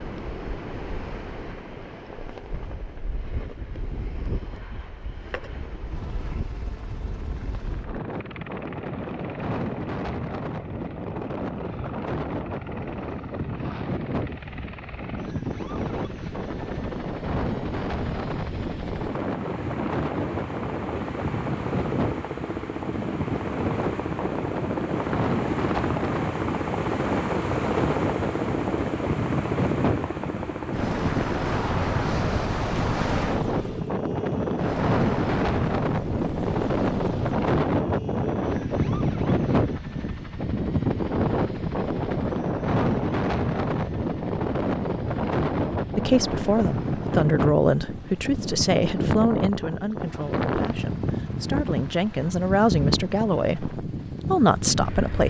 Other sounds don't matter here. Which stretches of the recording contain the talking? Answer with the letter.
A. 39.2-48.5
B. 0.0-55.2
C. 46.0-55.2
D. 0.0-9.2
C.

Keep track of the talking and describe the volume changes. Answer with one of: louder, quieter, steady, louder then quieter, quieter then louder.
quieter then louder.